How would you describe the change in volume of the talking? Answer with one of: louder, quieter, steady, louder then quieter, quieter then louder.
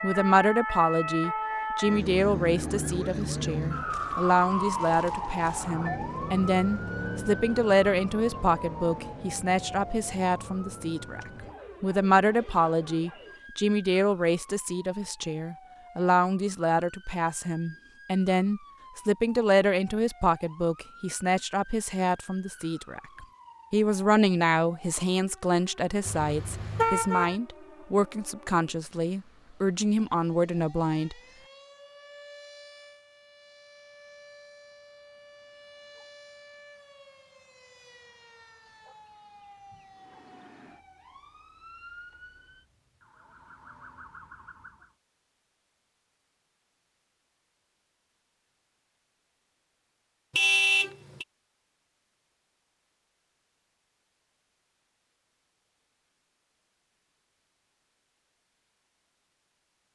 steady.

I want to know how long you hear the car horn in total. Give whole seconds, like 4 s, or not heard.
2 s.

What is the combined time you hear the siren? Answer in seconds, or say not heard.
45 s.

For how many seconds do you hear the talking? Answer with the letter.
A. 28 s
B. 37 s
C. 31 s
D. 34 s
C.